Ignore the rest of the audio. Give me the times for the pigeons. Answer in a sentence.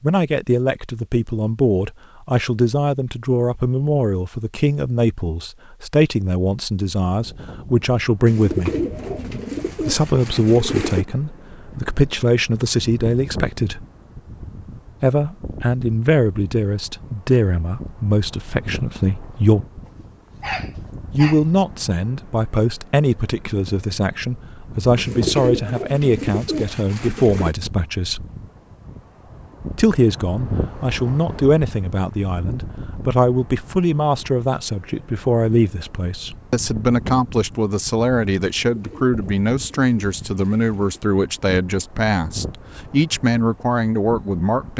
The pigeons can be heard from 8.2 to 11.1 s, from 24.9 to 27.6 s and from 38.6 to 41.0 s.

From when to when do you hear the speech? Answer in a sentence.
You can hear the speech from 0.0 to 8.8 s, from 9.8 to 13.8 s, from 15.0 to 19.6 s, from 21.1 to 28.2 s and from 29.8 to 44.7 s.